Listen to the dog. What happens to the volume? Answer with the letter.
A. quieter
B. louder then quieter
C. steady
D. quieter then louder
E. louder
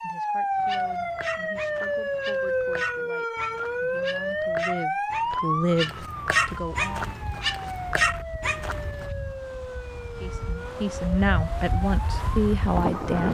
E.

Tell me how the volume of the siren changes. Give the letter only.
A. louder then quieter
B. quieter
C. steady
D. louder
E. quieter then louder
B.